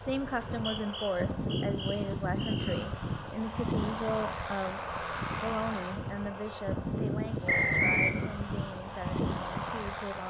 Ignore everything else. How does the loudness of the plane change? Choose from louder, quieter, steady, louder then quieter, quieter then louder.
steady.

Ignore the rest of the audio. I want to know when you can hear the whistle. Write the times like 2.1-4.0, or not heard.
0.5-2.9, 7.5-8.2.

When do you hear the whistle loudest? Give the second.
8 s.